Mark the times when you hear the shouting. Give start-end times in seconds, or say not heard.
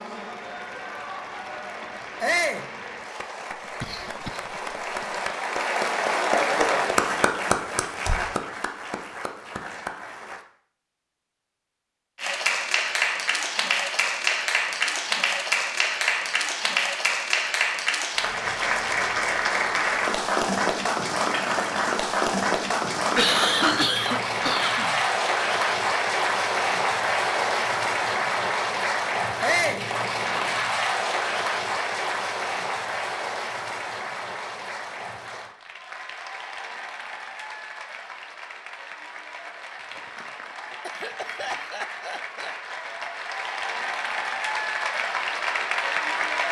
2.2-2.6, 29.4-29.9.